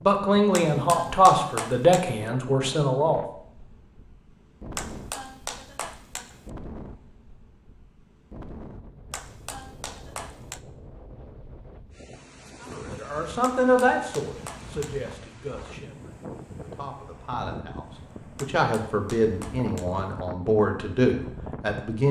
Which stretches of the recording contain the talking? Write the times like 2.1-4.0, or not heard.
0.0-3.2, 12.7-22.0.